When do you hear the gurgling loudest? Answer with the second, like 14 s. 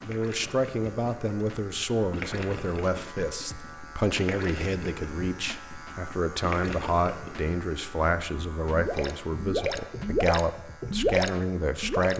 11 s.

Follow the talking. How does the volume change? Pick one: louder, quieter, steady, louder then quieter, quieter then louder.
steady.